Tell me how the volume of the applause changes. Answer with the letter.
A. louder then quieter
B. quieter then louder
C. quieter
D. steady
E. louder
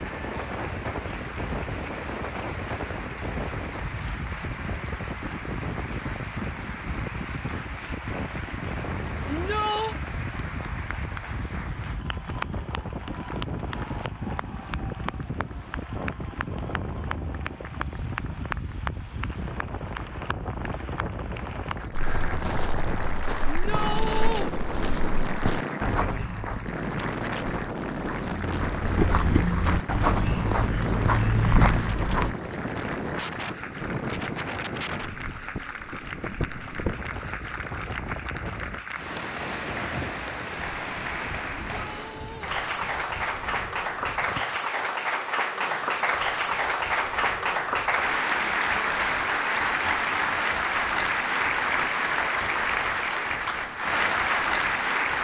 E.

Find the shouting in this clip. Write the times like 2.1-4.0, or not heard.
9.2-9.9, 23.4-24.5, 41.7-42.5.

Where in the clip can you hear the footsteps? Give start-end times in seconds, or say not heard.
21.9-32.4.